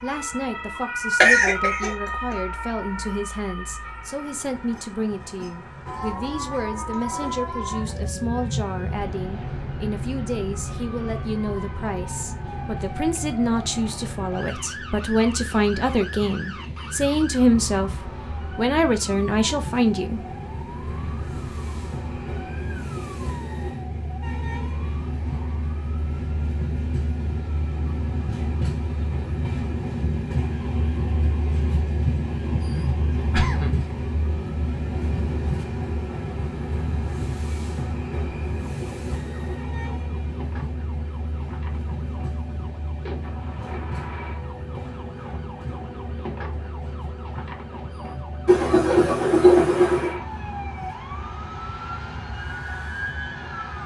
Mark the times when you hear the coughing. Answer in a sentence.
The coughing can be heard from 1.2 to 2.1 s, from 32.5 to 33.9 s and from 48.5 to 50.2 s.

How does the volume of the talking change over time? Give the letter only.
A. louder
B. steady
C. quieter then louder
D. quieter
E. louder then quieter
A.